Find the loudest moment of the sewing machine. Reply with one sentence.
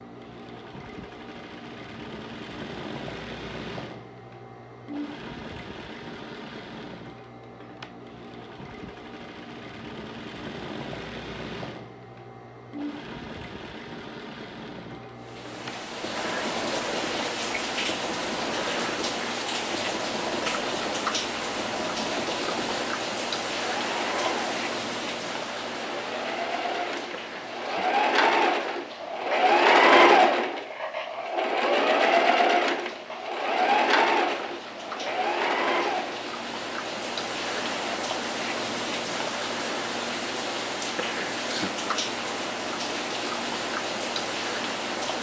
The volume of the sewing machine peaks at 30 seconds.